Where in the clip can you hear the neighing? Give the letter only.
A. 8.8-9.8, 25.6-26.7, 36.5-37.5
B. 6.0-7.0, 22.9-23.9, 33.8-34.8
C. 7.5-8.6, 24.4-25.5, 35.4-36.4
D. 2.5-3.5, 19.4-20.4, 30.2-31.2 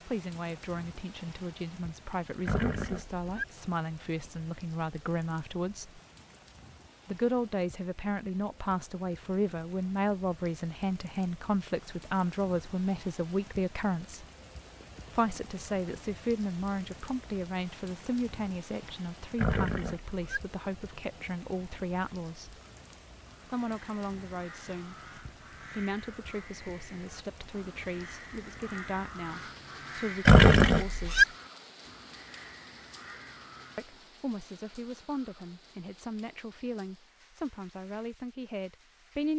D.